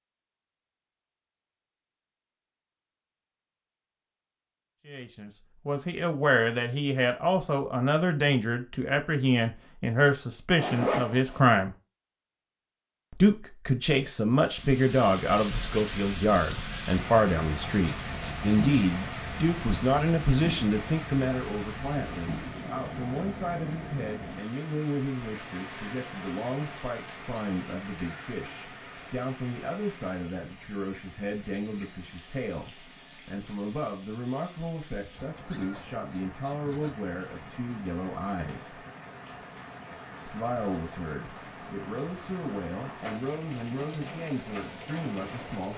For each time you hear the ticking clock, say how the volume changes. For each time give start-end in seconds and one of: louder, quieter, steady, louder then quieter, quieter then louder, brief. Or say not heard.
not heard.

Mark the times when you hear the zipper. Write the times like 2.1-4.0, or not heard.
10.6-11.5, 17.6-18.9, 35.0-37.0.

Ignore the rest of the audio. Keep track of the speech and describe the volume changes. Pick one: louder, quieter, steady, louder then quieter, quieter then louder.
quieter.